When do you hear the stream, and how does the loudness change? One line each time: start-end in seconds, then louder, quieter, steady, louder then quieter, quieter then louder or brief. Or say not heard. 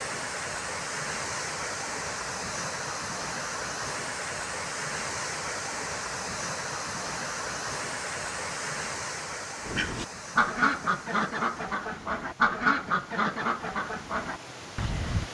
0.0-15.2 quieter.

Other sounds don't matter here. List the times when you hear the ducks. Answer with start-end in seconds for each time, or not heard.
9.6-15.2.